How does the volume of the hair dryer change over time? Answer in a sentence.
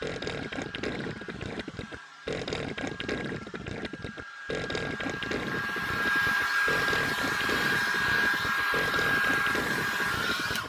The loudness of the hair dryer goes up.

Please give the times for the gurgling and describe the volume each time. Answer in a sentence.
The gurgling can be heard from 0.0 to 10.6 s, at a steady volume.